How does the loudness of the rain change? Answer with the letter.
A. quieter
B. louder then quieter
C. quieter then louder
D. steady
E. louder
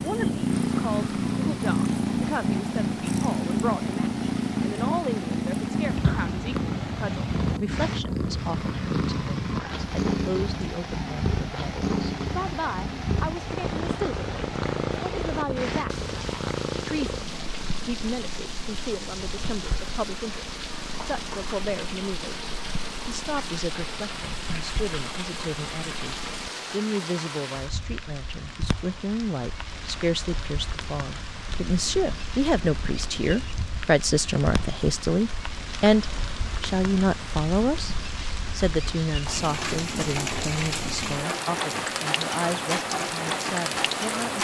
E.